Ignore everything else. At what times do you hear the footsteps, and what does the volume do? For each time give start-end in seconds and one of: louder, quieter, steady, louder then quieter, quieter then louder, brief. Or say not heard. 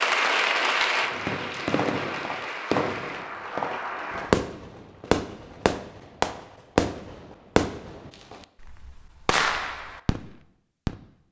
not heard.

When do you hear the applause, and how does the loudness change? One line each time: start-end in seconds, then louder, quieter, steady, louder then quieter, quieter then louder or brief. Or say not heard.
0.0-4.2 quieter.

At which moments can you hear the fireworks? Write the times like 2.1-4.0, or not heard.
0.9-10.9.